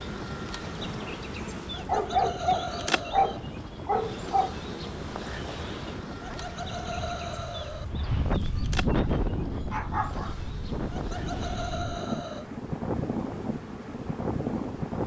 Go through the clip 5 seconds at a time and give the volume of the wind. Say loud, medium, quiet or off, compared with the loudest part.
medium, loud, loud.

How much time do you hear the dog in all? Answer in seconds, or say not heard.
4 s.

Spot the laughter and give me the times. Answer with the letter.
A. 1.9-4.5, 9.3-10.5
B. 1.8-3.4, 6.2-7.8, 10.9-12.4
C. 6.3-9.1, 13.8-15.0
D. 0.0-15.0
B.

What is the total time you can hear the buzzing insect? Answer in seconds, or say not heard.
15 s.